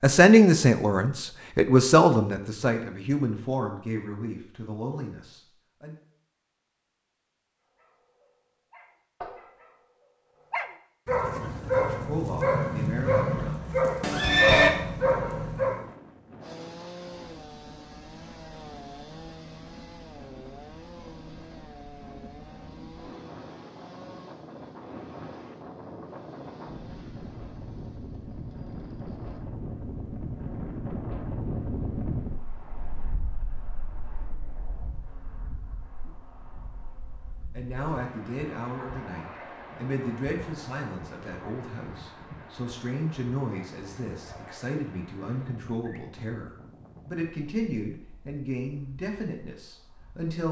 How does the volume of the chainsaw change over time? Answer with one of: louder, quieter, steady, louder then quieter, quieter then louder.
quieter.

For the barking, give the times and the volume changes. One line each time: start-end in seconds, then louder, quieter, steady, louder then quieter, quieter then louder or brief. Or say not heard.
7.8-15.9 louder.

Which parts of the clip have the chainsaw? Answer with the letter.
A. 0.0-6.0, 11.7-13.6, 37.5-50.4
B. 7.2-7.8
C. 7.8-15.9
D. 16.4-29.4
D.